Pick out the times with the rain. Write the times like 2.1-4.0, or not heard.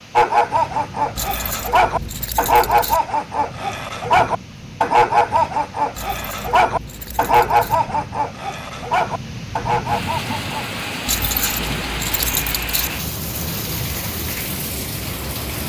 0.0-15.6.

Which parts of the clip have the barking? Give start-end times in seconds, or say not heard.
0.1-10.8.